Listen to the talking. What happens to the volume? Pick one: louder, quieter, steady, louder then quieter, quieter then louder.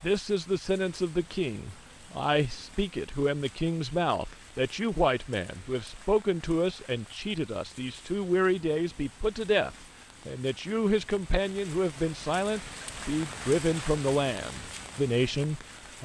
steady.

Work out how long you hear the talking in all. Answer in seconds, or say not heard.
16 s.